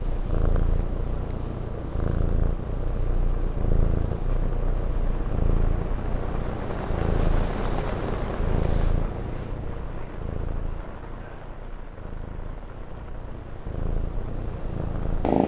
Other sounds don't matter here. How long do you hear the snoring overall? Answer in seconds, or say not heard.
not heard.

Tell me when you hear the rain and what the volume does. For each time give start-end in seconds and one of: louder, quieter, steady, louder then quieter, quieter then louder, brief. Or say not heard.
0.0-15.3 louder then quieter.